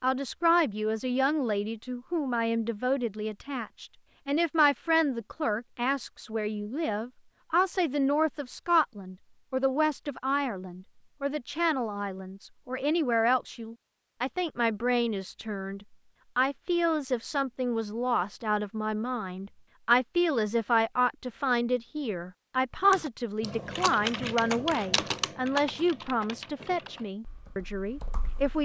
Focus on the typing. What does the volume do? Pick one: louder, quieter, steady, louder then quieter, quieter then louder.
quieter.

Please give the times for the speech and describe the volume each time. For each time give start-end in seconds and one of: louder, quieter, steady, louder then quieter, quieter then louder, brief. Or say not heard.
0.0-28.6 steady.